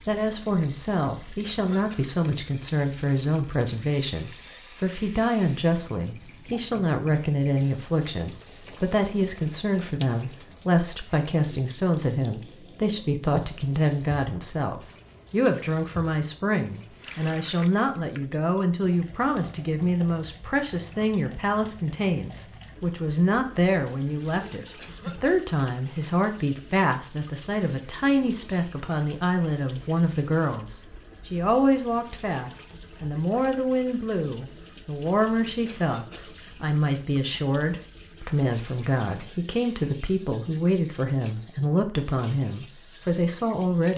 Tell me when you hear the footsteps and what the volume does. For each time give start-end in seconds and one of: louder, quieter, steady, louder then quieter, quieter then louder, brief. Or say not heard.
not heard.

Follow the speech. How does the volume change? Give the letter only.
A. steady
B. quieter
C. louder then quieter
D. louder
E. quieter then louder
A.